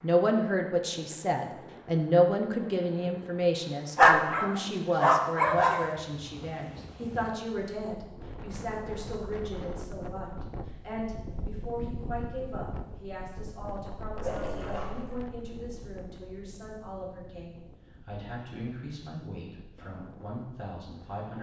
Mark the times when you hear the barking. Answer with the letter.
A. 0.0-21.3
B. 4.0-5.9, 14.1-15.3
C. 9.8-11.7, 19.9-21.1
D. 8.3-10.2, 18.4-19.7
B.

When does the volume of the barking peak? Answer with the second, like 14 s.
4 s.